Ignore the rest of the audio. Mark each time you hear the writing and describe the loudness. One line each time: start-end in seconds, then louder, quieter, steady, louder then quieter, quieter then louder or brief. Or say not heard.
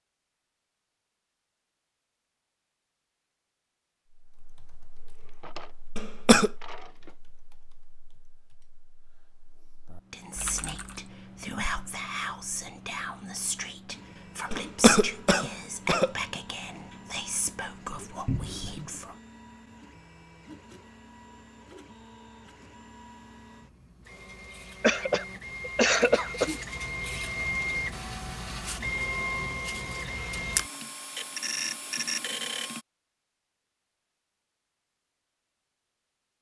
not heard.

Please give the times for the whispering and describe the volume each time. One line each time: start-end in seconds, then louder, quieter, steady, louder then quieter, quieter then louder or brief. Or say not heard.
10.1-19.1 steady.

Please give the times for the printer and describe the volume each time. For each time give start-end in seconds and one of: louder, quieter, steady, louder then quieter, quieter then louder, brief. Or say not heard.
13.8-32.9 louder.